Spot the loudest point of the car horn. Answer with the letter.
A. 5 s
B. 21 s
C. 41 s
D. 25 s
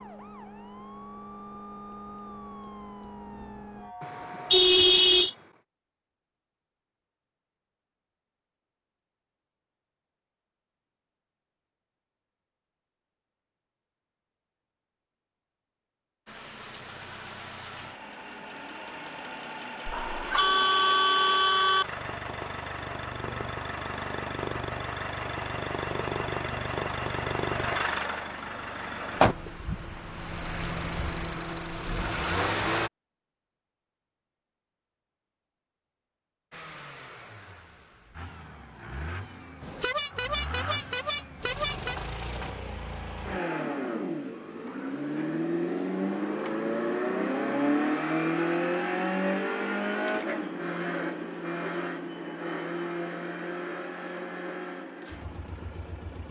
A.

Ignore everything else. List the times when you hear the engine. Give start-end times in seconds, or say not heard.
16.2-32.9, 36.5-56.2.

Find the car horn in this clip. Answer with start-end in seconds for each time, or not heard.
4.0-5.3, 19.9-21.9, 39.6-42.0.